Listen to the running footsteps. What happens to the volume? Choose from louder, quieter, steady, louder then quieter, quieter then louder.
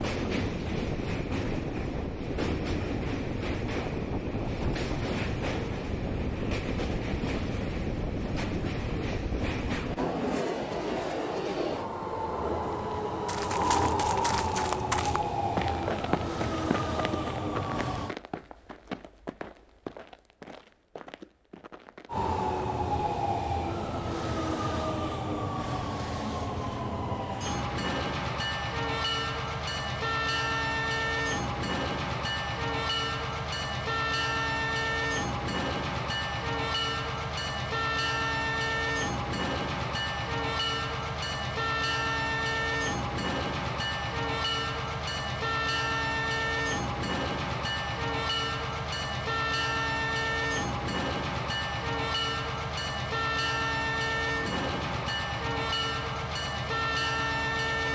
quieter.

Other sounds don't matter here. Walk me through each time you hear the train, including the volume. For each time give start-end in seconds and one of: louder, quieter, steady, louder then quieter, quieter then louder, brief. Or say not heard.
0.0-18.1 steady
22.1-57.9 steady.